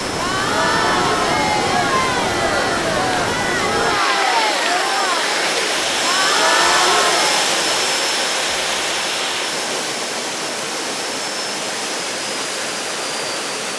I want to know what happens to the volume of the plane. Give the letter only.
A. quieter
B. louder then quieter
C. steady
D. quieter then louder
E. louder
B.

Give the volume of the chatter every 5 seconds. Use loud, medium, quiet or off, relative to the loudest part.
loud, loud, off.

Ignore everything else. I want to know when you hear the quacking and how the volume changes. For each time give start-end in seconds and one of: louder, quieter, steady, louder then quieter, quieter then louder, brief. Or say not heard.
not heard.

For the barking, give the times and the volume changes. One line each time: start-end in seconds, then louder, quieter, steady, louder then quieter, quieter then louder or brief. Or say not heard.
not heard.